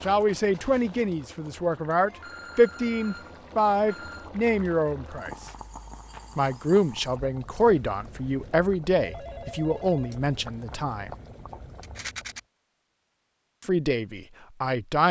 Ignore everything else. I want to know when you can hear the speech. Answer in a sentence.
You can hear the speech from 0.0 to 5.5 s, from 6.3 to 11.2 s and from 13.6 to 15.0 s.